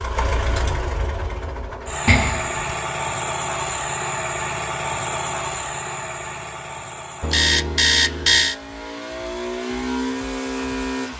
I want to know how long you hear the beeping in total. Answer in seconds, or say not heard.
2 s.